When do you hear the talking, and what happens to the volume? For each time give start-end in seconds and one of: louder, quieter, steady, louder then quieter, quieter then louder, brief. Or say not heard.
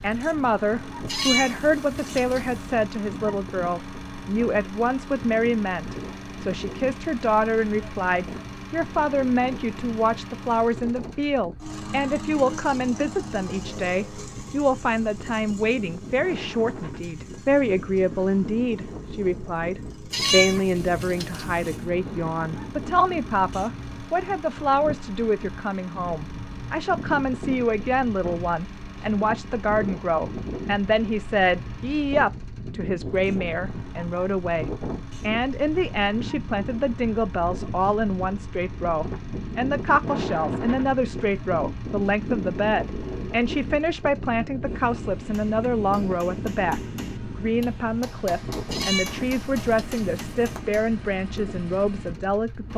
0.0-52.7 steady.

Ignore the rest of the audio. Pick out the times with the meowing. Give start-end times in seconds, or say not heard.
1.1-2.7, 20.1-21.8, 48.7-50.6.